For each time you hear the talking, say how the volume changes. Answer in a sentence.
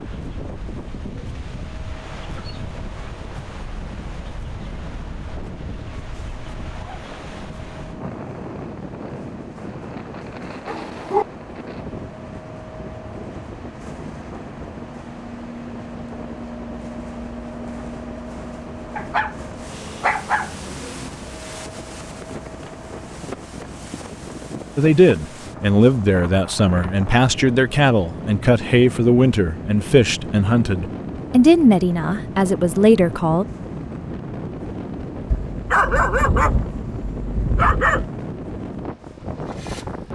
The talking can be heard from 24.8 to 33.5 s, at a steady volume.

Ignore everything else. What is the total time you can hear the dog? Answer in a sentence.
You can hear the dog for 5 seconds altogether.